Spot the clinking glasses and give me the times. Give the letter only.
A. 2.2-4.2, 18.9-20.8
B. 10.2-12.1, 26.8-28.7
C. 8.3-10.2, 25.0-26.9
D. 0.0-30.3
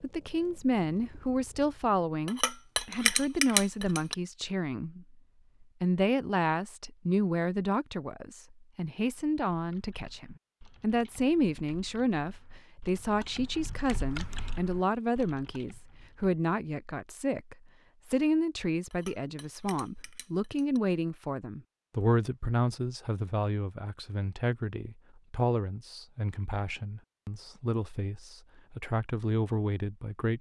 A.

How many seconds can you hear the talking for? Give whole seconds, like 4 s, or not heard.
30 s.